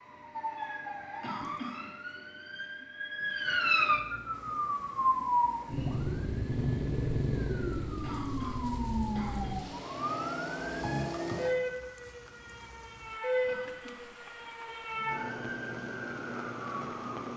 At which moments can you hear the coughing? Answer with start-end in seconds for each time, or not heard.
1.2-1.9, 8.0-9.7, 13.4-14.2.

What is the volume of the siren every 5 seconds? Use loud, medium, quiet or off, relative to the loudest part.
loud, loud, loud, medium.